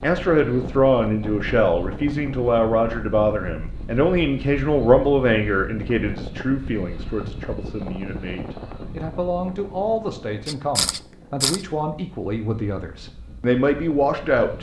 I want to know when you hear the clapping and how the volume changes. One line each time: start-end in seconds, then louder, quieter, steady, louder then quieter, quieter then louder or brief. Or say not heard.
not heard.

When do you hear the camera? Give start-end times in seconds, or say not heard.
10.4-11.7.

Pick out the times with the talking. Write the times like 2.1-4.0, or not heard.
0.0-14.5.